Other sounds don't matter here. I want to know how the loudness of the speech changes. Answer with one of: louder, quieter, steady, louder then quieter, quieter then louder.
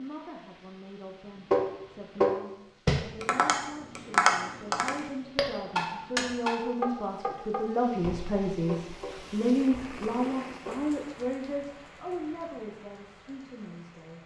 louder then quieter.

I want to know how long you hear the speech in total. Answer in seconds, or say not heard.
14 s.